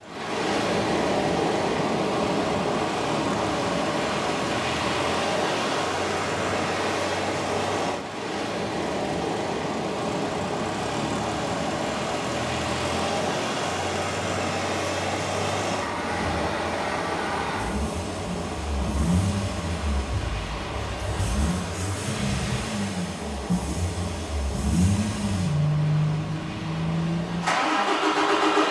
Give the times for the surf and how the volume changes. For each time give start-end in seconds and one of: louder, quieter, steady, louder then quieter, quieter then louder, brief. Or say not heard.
0.0-28.6 quieter.